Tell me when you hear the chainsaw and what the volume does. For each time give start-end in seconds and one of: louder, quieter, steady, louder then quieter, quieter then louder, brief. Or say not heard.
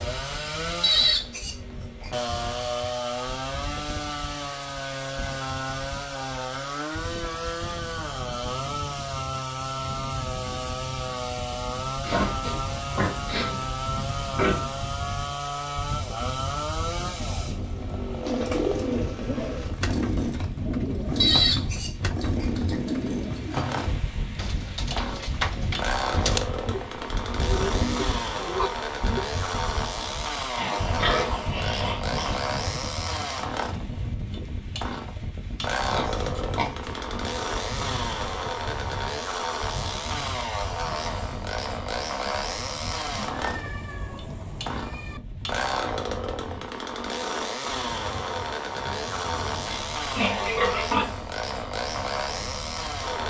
0.0-53.2 steady.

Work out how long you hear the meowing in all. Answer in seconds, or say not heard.
2 s.